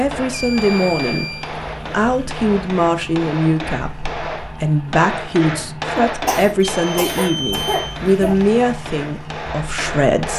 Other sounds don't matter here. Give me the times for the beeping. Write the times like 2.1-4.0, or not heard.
0.3-1.5, 6.6-8.0.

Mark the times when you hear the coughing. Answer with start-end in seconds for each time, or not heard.
6.0-8.3.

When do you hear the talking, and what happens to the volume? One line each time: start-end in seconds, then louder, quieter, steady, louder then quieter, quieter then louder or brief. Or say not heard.
0.0-1.3 brief
1.9-10.3 steady.